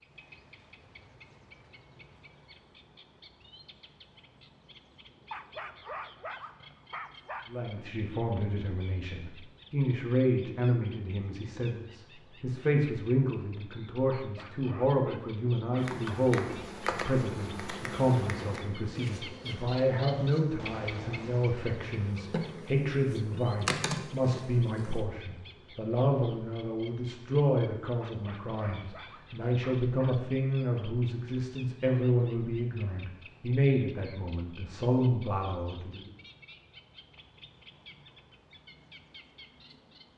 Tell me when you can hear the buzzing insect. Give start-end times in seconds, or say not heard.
15.8-25.0.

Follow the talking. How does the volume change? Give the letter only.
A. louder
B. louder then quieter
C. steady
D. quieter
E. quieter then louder
C.